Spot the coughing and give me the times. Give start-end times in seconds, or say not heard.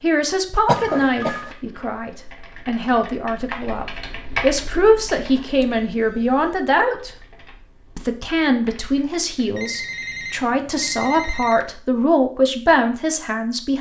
0.7-1.6.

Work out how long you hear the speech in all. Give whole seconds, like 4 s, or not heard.
13 s.